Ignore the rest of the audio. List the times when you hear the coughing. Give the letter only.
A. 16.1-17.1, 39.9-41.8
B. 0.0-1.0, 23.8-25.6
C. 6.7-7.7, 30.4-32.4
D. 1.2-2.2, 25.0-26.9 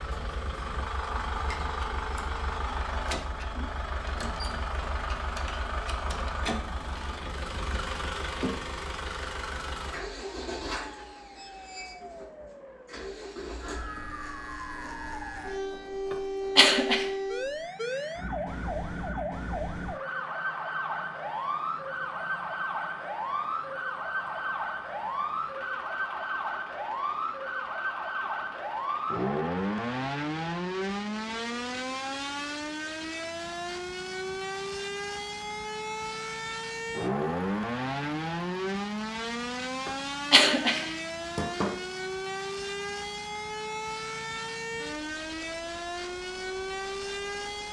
A.